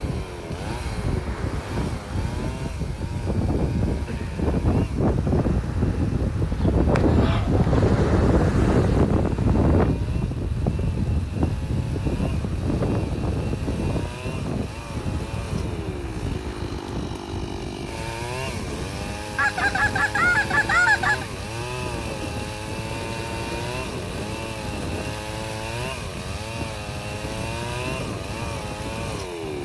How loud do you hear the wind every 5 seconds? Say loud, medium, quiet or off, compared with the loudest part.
medium, loud, medium, quiet, quiet, quiet.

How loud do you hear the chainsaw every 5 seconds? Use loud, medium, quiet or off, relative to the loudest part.
medium, quiet, medium, loud, loud, loud.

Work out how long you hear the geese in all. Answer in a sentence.
You can hear the geese for 3 seconds altogether.